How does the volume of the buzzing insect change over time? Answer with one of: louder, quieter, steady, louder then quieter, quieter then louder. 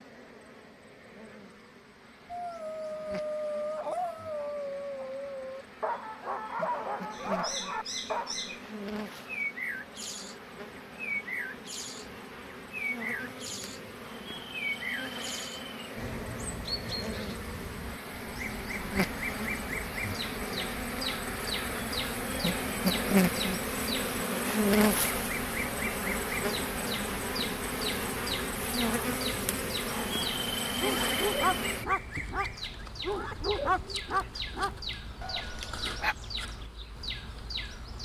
louder then quieter.